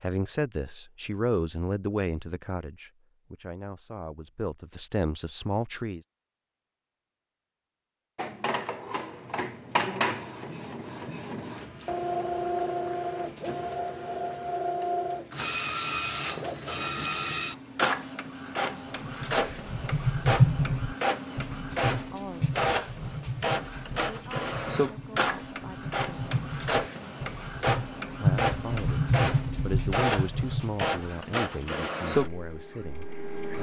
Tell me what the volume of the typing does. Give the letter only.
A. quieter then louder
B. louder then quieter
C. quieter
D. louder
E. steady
A.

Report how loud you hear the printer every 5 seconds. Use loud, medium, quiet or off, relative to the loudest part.
off, loud, loud, loud, loud, loud, loud.